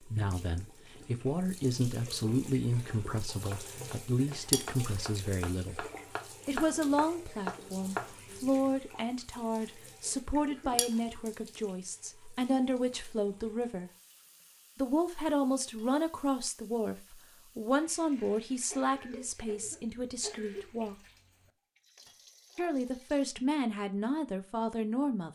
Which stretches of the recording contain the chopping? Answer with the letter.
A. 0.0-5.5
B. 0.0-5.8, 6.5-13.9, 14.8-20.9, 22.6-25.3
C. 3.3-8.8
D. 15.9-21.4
C.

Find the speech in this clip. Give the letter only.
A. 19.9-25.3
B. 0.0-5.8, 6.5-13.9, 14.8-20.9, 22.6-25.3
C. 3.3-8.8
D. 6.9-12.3
B.